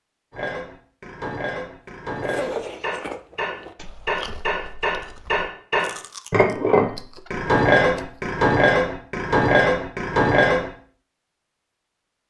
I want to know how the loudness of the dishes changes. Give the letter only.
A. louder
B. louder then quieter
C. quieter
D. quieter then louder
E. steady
A.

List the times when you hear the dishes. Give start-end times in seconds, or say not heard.
0.3-10.7.